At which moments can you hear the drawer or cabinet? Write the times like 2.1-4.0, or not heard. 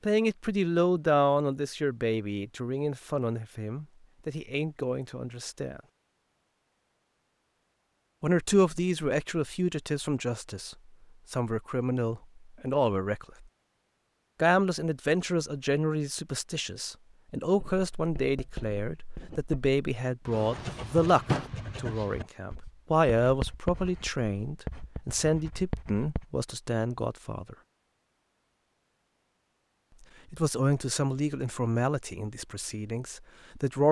20.3-21.5.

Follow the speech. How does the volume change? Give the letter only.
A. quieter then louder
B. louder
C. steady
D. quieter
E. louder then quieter
C.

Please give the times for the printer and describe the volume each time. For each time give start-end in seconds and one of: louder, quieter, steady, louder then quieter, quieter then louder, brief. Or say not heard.
not heard.